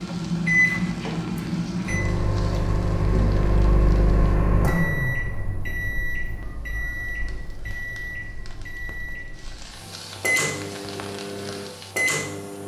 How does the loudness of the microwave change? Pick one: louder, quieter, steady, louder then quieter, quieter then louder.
quieter then louder.